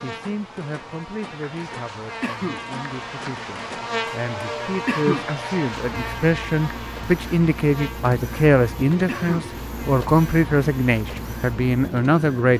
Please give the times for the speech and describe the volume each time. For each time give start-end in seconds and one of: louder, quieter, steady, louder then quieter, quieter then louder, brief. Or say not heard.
0.0-12.5 louder.